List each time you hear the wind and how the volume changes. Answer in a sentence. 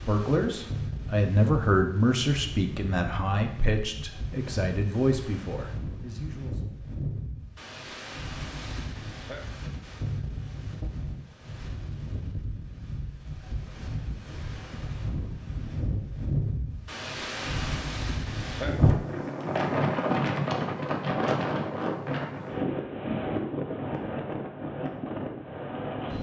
The wind can be heard from 0.0 to 26.1 s, getting louder.